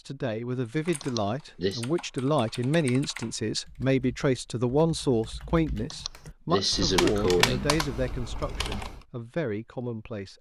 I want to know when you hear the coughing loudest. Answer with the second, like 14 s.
7 s.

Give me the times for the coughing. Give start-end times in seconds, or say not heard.
1.0-1.9, 5.9-7.8.